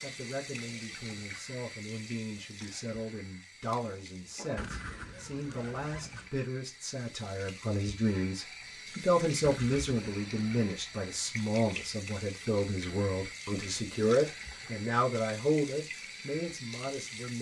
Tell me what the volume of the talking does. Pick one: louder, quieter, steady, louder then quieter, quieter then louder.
louder.